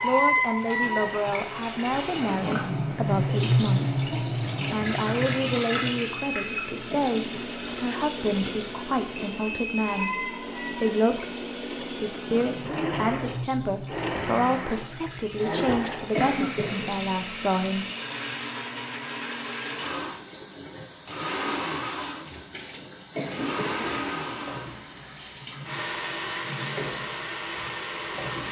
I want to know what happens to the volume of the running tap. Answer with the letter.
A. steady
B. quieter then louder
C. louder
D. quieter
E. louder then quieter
D.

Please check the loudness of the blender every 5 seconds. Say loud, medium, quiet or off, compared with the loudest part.
medium, loud, loud, loud, loud, loud.